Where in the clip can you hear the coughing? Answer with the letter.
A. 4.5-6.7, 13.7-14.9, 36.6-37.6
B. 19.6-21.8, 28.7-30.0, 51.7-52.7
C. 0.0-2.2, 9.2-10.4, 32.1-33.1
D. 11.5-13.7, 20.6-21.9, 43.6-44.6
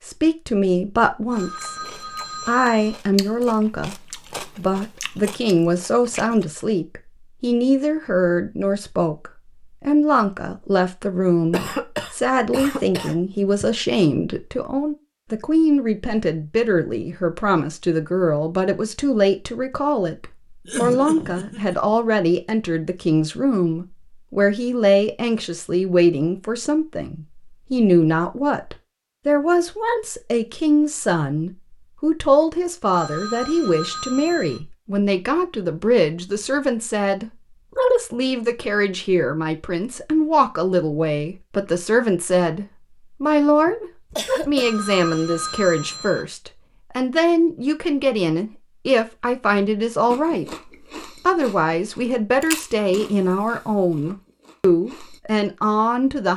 D.